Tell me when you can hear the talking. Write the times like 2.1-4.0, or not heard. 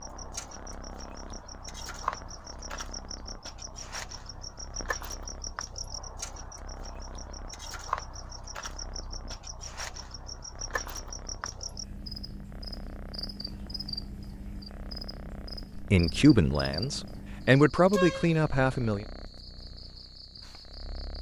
15.8-19.1.